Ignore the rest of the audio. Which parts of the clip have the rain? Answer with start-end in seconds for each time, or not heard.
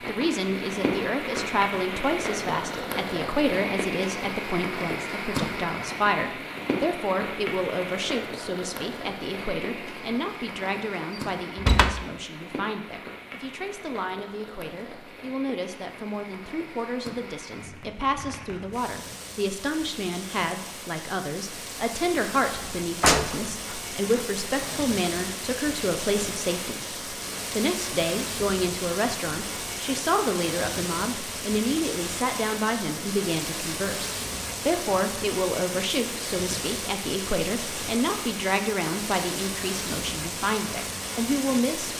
0.0-41.9.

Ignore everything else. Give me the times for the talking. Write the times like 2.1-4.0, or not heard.
0.1-41.9.